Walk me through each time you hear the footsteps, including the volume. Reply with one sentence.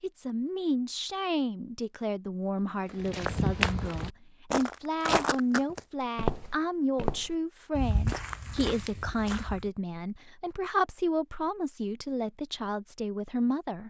The footsteps can be heard from 2.9 to 9.7 s, getting quieter.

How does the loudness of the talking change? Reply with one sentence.
The volume of the talking stays about the same.